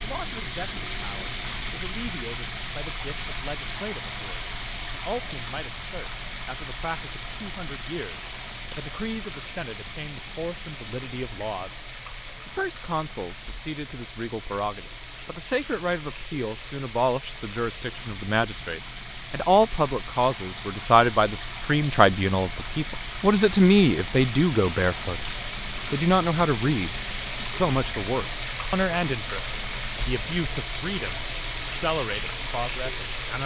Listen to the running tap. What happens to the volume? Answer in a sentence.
The loudness of the running tap goes down, then up.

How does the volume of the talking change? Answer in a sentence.
The volume of the talking goes up, then down.